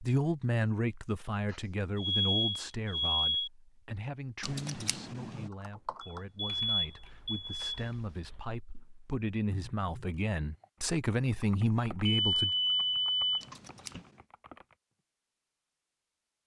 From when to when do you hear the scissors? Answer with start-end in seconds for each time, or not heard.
4.4-5.5, 13.4-14.2.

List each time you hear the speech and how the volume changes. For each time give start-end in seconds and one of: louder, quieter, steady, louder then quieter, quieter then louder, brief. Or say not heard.
0.0-12.6 quieter then louder.